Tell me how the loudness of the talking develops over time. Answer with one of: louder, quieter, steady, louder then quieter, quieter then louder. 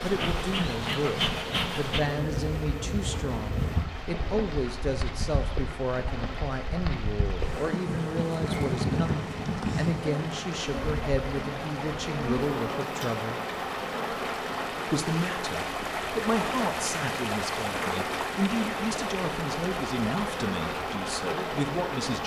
steady.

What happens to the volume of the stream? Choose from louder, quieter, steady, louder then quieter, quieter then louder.
louder.